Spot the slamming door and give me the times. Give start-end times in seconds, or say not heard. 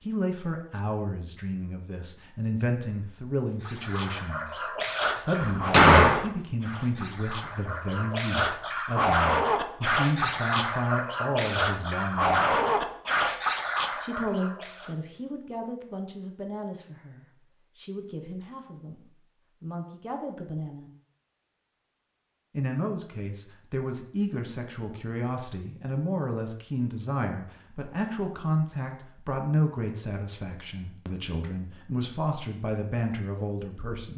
5.4-6.2.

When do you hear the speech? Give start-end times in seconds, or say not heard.
0.0-12.6, 13.9-20.9, 22.5-34.1.